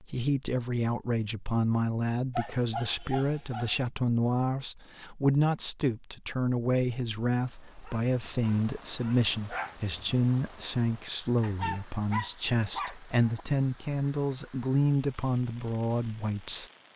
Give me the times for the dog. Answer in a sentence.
You can hear the dog from 2.4 to 3.8 s, from 7.8 to 9.8 s and from 11.4 to 13.4 s.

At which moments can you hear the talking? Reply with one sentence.
You can hear the talking from 0.0 to 16.7 s.